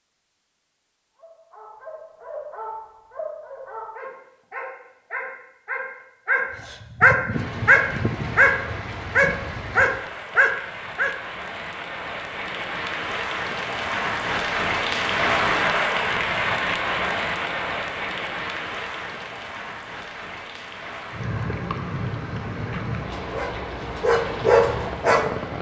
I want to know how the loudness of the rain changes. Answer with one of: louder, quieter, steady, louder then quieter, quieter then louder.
louder then quieter.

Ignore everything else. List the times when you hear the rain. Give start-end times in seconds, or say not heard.
7.3-25.5.